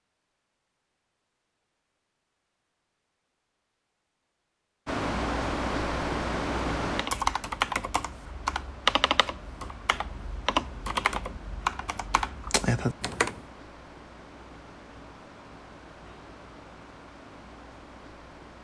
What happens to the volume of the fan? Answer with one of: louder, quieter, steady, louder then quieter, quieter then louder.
quieter.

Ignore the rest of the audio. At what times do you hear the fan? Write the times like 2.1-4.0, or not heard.
4.8-18.5.